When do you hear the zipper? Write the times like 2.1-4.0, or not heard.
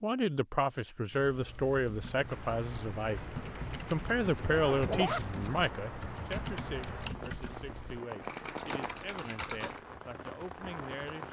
4.5-5.2.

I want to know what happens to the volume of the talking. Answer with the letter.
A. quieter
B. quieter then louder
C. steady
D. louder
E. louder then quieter
A.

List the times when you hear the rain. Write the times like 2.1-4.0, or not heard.
2.0-11.2.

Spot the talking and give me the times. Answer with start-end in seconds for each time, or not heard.
0.0-3.2, 3.9-11.2.